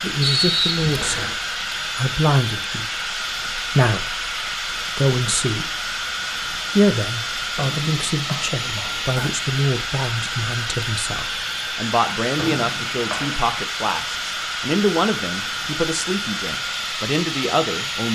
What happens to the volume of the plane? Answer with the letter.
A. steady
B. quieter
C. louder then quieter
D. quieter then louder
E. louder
A.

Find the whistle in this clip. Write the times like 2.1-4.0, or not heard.
0.2-1.4, 7.5-9.1, 12.3-13.3.